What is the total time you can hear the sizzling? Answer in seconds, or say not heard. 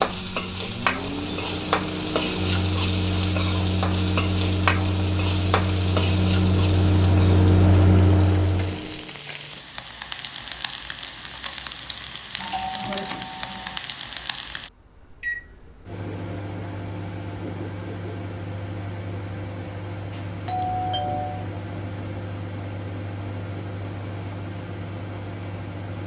15 s.